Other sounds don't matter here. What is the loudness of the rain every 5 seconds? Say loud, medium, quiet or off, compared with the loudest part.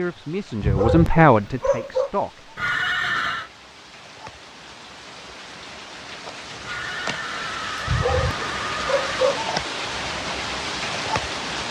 quiet, loud, loud.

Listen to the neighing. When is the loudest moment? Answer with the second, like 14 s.
3 s.